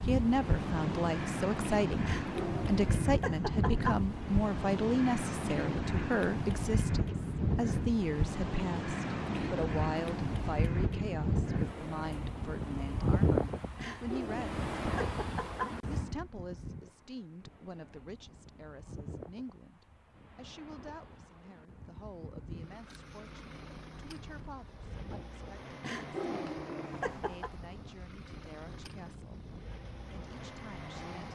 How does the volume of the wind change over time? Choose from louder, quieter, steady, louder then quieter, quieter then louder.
quieter.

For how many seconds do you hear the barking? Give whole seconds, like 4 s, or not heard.
6 s.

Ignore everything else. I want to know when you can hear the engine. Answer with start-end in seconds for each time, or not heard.
22.5-31.3.